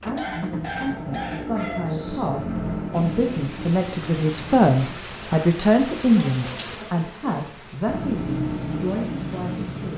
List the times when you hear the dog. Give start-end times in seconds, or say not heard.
0.1-2.3.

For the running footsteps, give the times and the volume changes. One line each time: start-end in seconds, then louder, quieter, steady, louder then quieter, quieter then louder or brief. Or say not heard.
not heard.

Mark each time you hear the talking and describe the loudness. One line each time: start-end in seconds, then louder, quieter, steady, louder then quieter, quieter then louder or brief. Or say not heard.
0.1-9.9 louder then quieter.